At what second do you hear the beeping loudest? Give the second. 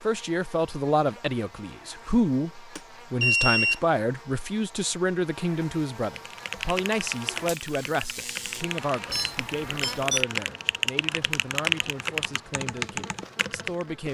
3 s.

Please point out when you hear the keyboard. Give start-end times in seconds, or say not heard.
6.2-13.8.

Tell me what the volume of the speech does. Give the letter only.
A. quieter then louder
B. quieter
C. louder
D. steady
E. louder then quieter
B.